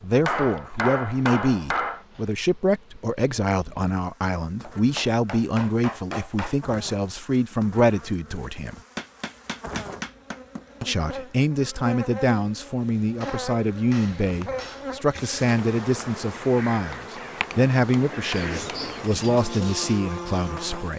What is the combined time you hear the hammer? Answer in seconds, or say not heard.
9 s.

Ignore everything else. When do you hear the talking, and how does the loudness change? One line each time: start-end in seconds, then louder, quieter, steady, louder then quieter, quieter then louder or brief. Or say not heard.
0.0-8.8 steady
10.8-20.9 steady.